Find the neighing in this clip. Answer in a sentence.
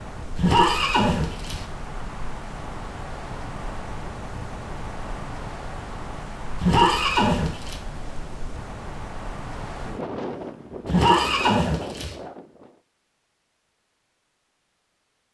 You can hear the neighing from 0.3 to 1.6 s, from 6.6 to 7.8 s and from 10.8 to 12.2 s.